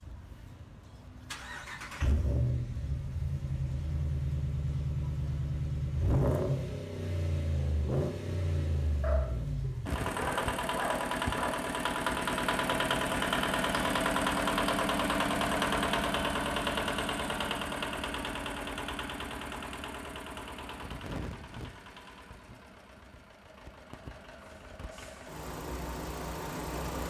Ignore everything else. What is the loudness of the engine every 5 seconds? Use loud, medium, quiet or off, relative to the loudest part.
medium, loud, loud, loud, quiet, medium.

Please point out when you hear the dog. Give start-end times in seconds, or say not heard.
9.0-11.7.